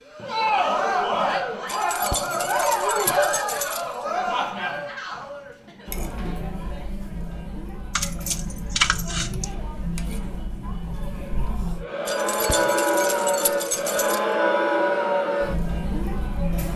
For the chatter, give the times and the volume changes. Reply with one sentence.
You can hear the chatter from 0.1 to 16.7 s, getting quieter then louder.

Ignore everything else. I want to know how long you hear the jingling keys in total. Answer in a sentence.
You can hear the jingling keys for 6 seconds altogether.